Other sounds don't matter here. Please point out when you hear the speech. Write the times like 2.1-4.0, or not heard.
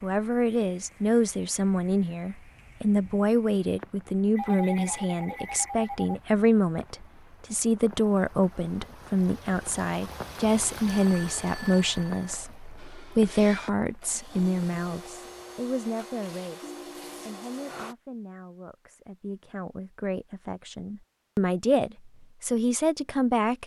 0.0-23.6.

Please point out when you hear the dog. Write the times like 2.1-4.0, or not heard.
not heard.